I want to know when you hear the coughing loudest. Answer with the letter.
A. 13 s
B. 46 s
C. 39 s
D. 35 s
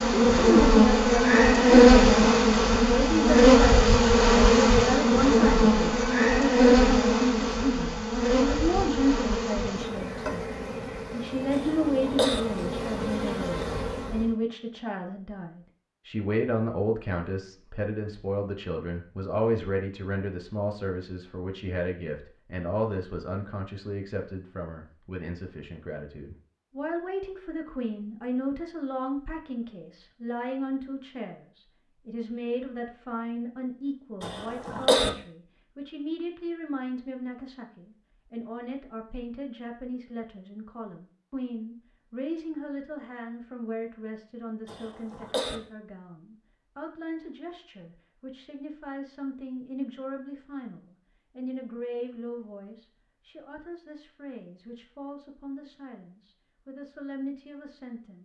D.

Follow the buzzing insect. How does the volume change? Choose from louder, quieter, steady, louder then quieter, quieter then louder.
quieter.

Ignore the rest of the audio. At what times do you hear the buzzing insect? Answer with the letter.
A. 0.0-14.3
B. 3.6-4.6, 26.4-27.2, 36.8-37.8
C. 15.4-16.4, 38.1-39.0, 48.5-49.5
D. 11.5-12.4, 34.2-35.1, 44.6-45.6
A.